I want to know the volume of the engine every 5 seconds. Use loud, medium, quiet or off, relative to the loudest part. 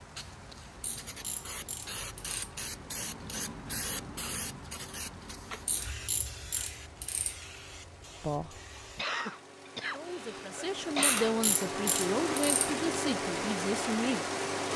quiet, quiet, loud.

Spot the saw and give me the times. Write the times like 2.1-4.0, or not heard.
not heard.